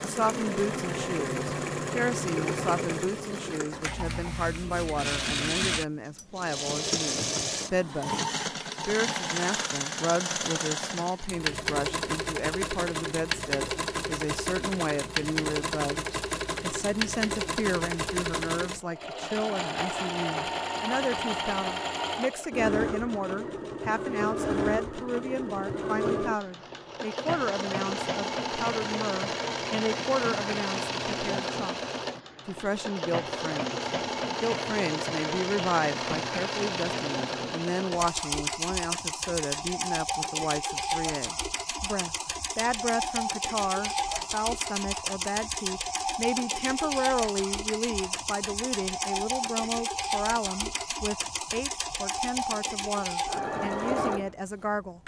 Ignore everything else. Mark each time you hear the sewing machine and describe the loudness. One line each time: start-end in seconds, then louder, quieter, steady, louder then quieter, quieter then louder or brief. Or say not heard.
0.0-55.0 steady.